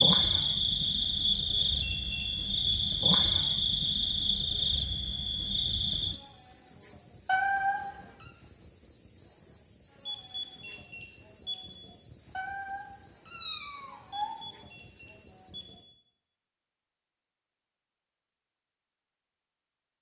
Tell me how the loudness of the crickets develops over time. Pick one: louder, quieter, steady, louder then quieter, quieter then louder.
steady.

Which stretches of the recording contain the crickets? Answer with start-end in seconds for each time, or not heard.
0.0-16.0.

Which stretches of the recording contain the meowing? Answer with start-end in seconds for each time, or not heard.
7.2-8.3, 12.3-14.3.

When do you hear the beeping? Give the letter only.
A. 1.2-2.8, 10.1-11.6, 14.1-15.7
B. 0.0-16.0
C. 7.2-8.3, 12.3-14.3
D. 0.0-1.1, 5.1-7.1
A.